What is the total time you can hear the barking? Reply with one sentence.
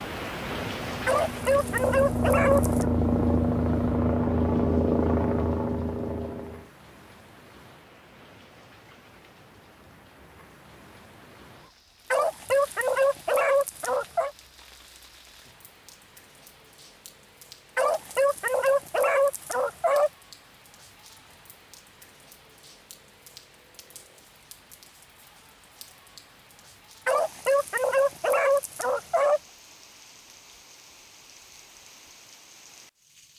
The barking can be heard for 9 seconds in total.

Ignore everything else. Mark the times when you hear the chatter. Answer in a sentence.
You can't hear the chatter here.